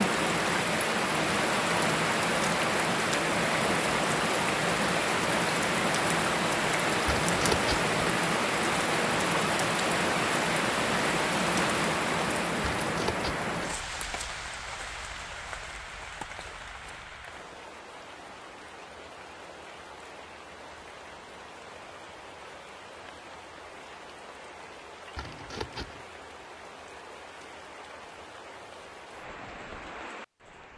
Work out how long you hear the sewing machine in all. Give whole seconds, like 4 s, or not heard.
not heard.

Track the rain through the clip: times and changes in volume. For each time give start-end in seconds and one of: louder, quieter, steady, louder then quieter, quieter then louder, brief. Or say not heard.
0.0-30.7 quieter.